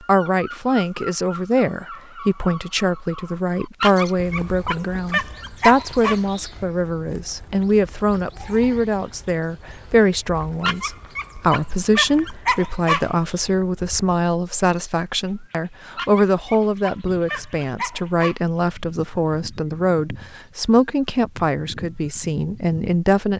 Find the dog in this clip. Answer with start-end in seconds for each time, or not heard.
3.8-6.2, 10.6-13.1, 15.9-18.4.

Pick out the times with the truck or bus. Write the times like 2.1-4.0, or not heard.
not heard.